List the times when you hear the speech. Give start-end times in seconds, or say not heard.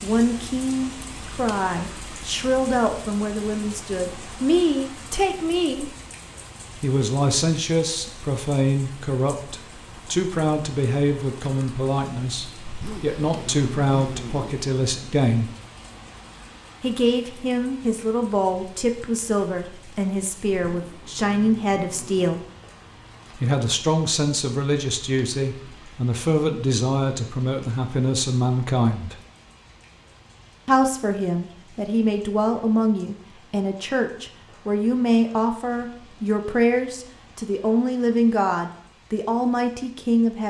0.0-5.9, 6.8-15.5, 16.8-22.4, 23.4-29.1, 30.6-40.4.